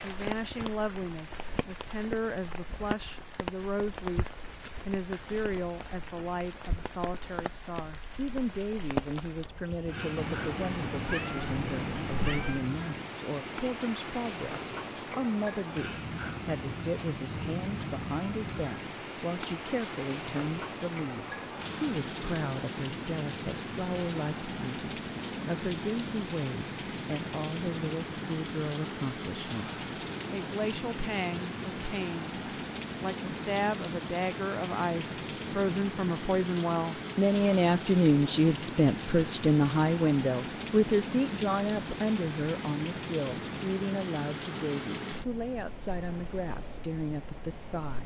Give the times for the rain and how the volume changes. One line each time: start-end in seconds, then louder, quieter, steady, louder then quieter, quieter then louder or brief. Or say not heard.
0.0-48.0 steady.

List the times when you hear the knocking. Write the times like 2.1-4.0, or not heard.
not heard.